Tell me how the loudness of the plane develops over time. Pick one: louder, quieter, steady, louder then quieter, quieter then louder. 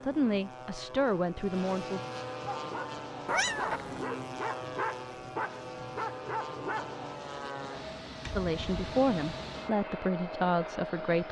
steady.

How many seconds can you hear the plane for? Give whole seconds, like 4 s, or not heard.
11 s.